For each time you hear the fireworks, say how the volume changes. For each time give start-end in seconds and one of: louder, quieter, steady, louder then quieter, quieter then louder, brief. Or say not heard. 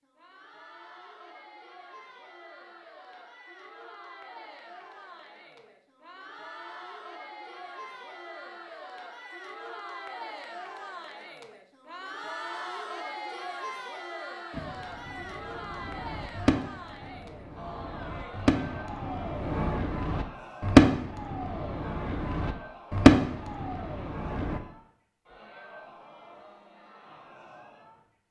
14.5-24.6 louder.